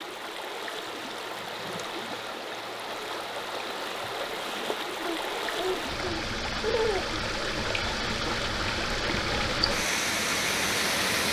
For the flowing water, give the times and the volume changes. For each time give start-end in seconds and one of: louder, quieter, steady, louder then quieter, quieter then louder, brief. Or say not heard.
0.0-11.2 louder.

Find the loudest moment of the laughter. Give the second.
7 s.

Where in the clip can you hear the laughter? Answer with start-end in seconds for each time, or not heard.
5.0-7.1.